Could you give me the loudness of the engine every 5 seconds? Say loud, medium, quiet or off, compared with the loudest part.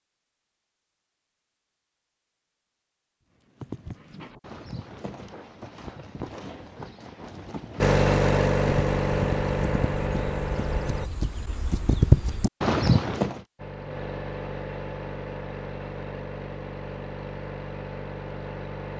off, loud, medium, quiet.